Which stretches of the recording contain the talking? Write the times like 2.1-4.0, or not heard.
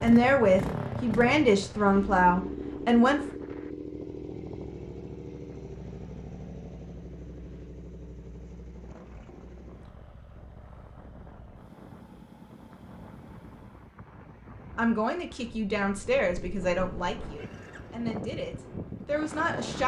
0.0-3.2, 14.8-19.8.